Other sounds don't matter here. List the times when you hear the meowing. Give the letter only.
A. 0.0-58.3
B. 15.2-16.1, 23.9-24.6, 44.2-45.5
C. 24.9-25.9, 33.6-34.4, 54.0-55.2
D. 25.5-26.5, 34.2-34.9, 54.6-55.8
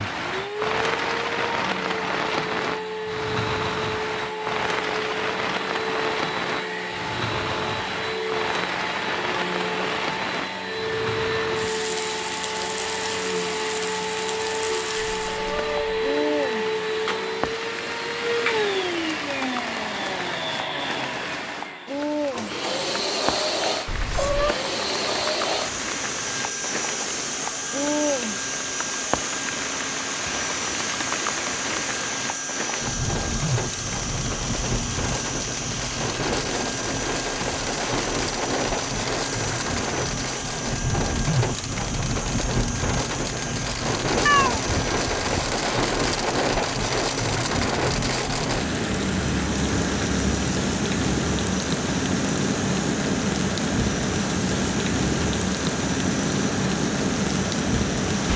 B.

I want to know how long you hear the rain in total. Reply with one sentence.
You can hear the rain for 58 seconds altogether.